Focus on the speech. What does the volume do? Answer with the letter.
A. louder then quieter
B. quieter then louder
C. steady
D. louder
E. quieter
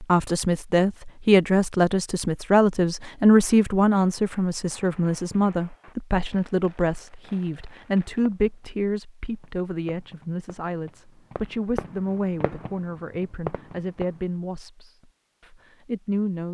E.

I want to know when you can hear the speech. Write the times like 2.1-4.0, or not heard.
0.0-16.4.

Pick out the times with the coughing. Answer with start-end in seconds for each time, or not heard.
not heard.